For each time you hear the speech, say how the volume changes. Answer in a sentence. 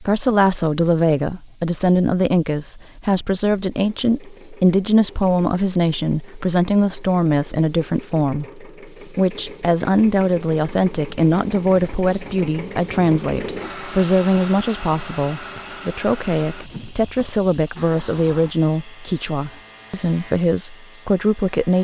You can hear the speech from 0.0 to 21.8 s, at a steady volume.